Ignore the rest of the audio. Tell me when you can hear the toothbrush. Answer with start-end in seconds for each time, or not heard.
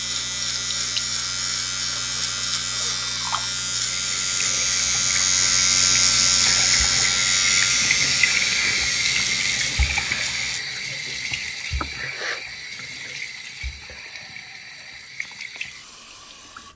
not heard.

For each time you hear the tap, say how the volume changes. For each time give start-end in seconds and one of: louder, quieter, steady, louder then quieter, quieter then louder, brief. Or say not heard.
0.0-16.7 louder then quieter.